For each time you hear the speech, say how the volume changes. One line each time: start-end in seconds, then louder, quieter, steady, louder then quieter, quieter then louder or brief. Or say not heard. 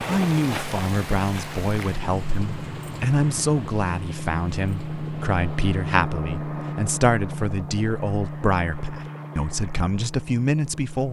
0.0-11.0 steady.